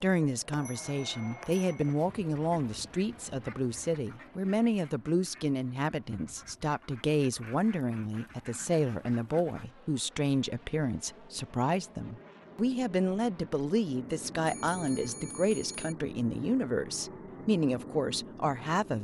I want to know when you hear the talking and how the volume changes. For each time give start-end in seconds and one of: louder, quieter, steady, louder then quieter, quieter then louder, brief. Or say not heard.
0.0-18.9 steady.